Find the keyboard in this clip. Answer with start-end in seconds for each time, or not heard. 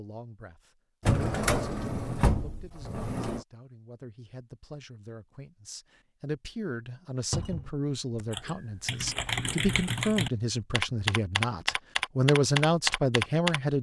8.1-13.6.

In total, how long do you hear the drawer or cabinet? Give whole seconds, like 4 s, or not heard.
3 s.